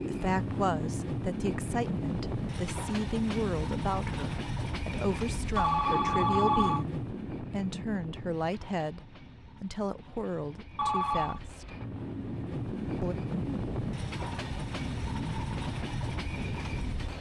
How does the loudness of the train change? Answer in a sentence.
The loudness of the train goes down, then up.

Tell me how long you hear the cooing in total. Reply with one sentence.
The cooing can't be heard in this clip.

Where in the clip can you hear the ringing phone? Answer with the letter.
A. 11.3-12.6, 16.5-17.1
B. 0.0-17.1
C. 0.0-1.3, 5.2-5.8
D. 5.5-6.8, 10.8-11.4
D.